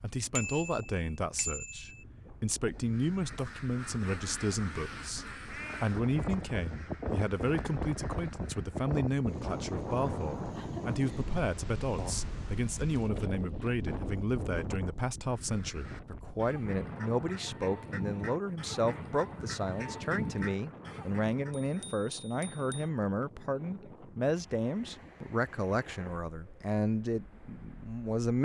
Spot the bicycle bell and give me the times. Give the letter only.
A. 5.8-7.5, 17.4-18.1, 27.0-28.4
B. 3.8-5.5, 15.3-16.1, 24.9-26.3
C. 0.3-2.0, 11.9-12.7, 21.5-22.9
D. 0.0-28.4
C.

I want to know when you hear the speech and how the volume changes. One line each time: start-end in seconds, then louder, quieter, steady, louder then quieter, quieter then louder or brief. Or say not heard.
0.0-28.4 steady.